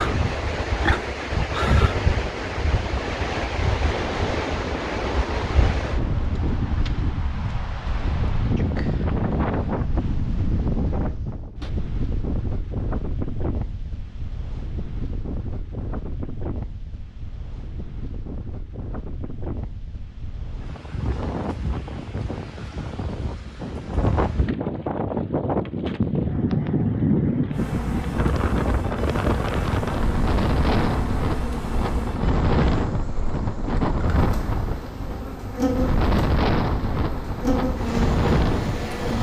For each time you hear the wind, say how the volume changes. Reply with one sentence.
You can hear the wind from 0.0 to 39.1 s, getting quieter then louder.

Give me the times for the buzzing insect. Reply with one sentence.
You can hear the buzzing insect from 27.5 to 39.1 s.